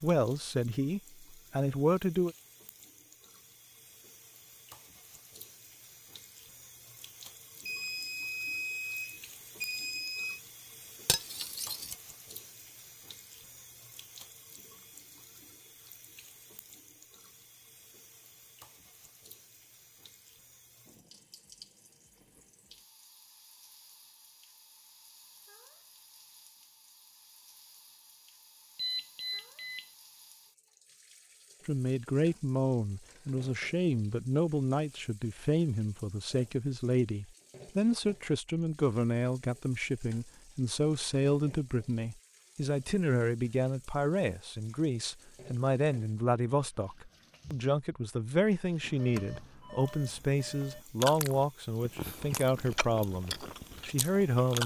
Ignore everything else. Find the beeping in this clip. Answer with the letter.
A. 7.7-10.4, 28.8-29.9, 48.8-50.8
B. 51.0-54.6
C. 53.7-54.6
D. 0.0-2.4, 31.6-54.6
A.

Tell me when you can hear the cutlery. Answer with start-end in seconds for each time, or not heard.
11.1-11.9.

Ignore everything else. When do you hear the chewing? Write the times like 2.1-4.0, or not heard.
51.0-54.6.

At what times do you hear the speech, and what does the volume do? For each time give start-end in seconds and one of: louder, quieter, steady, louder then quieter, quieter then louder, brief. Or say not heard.
0.0-2.4 brief
31.6-54.6 steady.